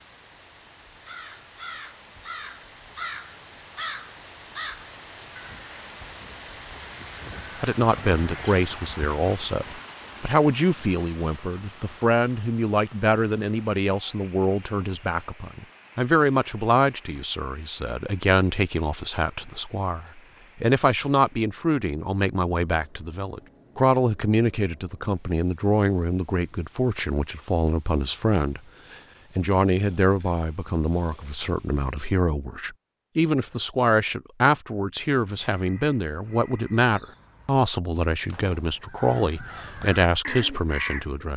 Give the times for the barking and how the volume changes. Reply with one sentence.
You can't hear the barking here.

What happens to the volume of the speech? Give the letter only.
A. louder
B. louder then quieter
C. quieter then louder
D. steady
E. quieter
D.